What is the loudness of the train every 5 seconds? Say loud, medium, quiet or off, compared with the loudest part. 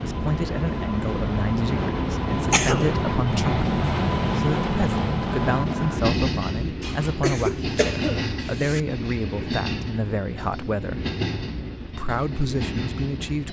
loud, loud, medium.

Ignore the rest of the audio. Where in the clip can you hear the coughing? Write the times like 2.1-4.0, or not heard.
2.5-3.0, 6.8-8.8.